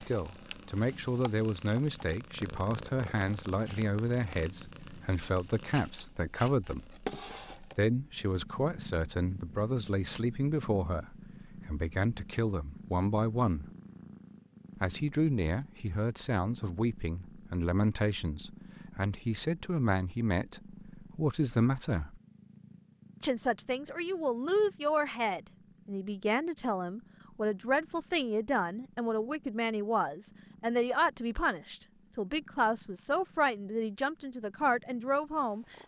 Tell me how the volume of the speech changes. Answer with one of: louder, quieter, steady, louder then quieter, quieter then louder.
steady.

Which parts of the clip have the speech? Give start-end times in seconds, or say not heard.
0.0-13.7, 14.8-22.2, 23.2-35.8.